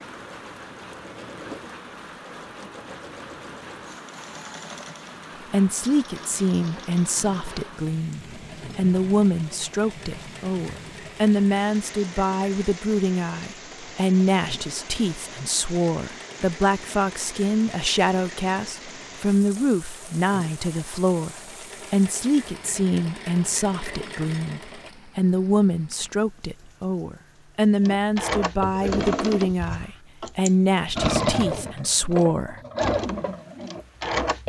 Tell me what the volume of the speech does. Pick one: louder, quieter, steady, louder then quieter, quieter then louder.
steady.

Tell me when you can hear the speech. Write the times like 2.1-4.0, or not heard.
5.5-32.6.